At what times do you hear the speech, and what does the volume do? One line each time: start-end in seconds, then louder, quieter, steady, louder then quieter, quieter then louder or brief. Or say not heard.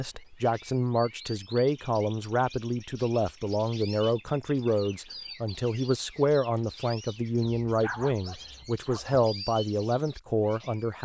0.0-11.0 steady.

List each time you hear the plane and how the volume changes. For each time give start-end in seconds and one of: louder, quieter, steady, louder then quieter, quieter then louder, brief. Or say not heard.
not heard.